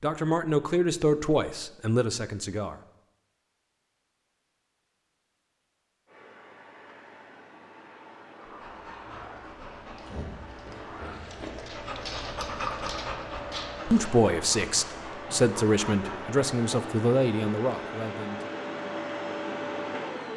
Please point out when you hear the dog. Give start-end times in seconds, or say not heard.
8.4-16.3.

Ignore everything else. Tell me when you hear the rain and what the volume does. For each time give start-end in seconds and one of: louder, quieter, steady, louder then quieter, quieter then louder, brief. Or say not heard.
not heard.